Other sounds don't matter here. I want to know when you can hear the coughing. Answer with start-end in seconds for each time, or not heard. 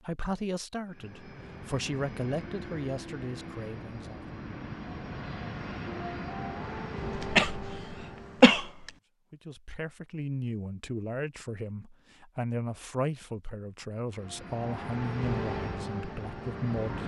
7.2-7.8, 8.4-8.9.